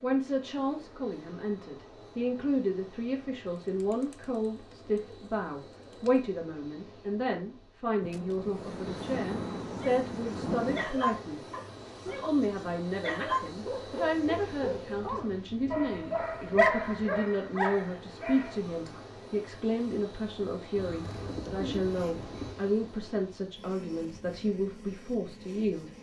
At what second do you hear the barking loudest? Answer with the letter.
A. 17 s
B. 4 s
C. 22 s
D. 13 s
A.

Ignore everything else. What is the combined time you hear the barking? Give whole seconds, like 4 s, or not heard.
9 s.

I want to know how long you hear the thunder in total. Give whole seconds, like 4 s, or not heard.
6 s.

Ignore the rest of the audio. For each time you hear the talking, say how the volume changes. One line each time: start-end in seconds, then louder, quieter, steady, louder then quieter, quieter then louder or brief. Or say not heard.
0.0-25.9 steady.